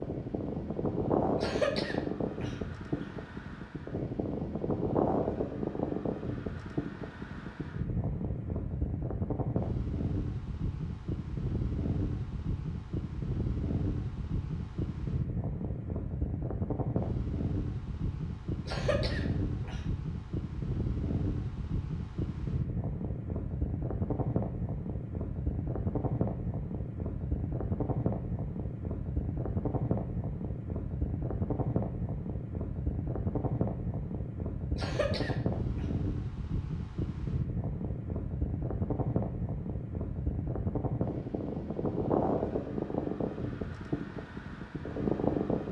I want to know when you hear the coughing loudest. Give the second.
2 s.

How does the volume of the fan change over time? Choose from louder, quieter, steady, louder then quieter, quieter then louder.
steady.